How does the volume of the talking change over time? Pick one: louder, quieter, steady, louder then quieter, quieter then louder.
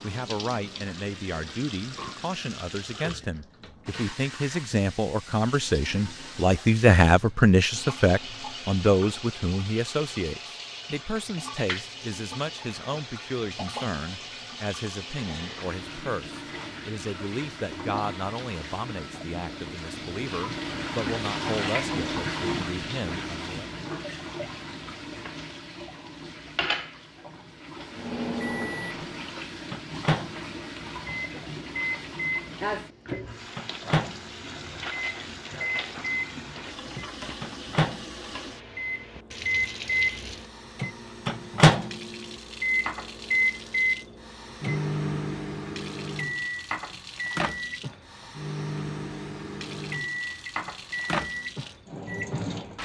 louder then quieter.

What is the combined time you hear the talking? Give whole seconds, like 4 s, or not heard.
24 s.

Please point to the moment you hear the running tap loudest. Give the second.
22 s.